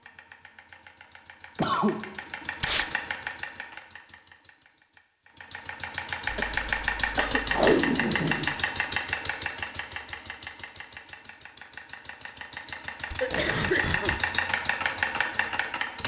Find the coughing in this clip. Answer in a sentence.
The coughing can be heard from 1.6 to 2.0 s, from 6.2 to 7.6 s and from 13.2 to 14.1 s.